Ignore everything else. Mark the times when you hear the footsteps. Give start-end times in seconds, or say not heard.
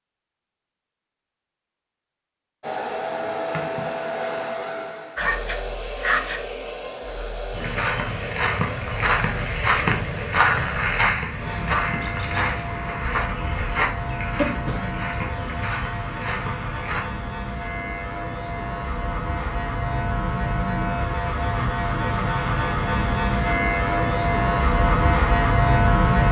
7.5-17.1.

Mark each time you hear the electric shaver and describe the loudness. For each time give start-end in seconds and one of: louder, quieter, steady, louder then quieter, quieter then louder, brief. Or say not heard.
11.3-26.2 louder.